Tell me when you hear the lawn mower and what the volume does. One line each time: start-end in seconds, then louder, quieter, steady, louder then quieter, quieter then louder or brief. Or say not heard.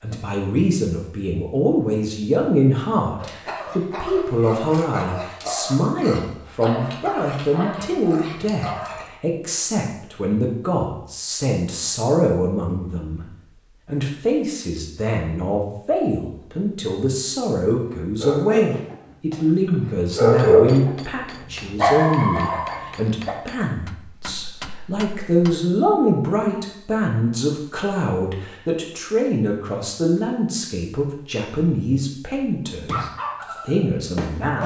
not heard.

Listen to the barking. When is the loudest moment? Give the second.
20 s.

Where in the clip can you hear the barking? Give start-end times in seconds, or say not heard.
3.1-9.1, 17.7-23.4, 32.9-34.6.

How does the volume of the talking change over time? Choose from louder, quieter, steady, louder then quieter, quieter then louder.
steady.